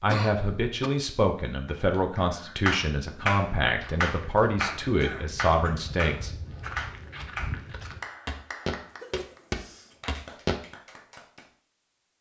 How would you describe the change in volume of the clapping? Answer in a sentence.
The volume of the clapping goes down.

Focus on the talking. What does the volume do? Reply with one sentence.
The volume of the talking stays about the same.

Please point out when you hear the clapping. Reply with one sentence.
The clapping can be heard from 1.4 to 11.4 s.